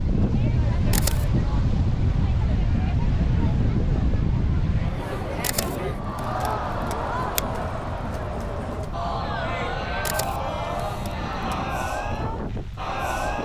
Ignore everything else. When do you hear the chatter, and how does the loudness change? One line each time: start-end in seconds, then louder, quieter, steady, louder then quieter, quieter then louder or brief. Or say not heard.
0.0-13.4 louder.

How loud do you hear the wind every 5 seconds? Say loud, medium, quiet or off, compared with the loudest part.
loud, medium, medium.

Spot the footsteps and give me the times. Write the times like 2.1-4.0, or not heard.
not heard.